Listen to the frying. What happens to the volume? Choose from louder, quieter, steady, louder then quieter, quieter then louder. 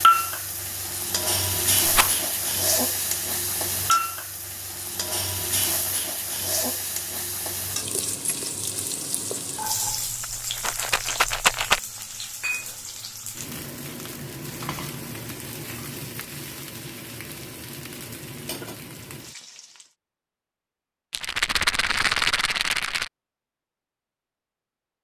quieter.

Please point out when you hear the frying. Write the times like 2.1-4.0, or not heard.
0.0-19.9.